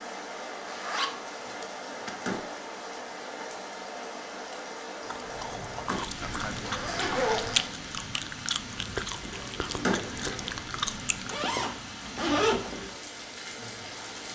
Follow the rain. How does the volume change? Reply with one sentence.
The volume of the rain stays about the same.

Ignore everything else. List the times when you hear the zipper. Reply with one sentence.
You can hear the zipper from 0.7 to 2.1 s, from 6.2 to 7.8 s and from 11.3 to 12.8 s.